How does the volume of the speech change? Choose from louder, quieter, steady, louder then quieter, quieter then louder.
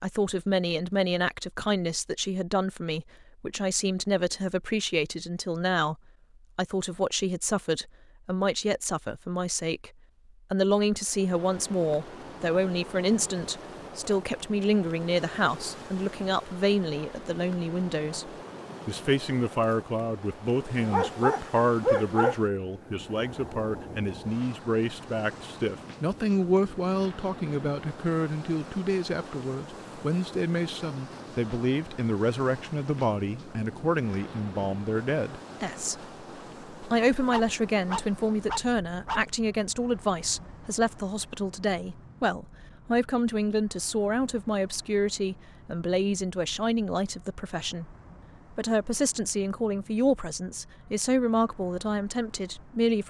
steady.